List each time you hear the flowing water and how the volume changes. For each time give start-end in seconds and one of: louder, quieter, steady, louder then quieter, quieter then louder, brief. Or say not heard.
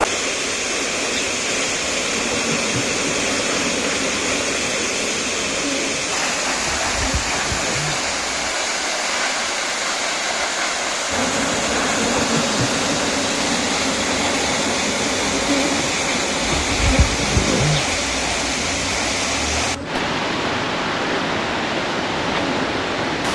0.0-23.2 steady.